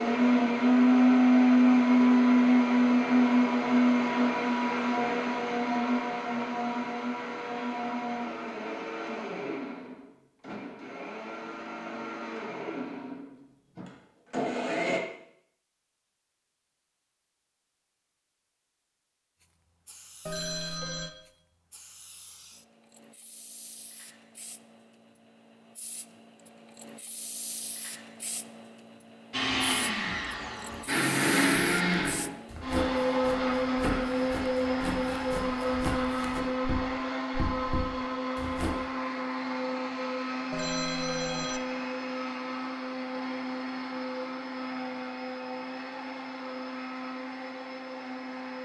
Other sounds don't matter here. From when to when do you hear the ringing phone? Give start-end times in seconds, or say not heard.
20.2-21.1, 40.5-41.6.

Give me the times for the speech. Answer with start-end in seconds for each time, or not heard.
not heard.